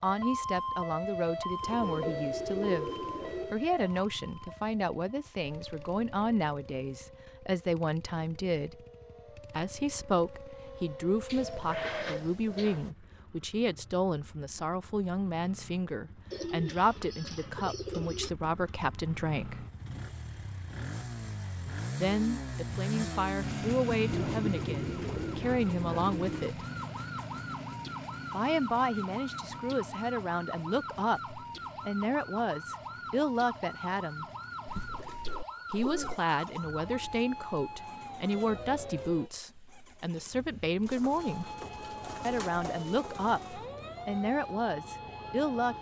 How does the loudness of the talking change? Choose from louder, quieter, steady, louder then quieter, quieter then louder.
steady.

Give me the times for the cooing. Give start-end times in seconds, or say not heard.
1.6-3.5, 11.2-12.9, 16.3-18.3, 24.1-26.5, 34.6-36.2, 40.9-43.6.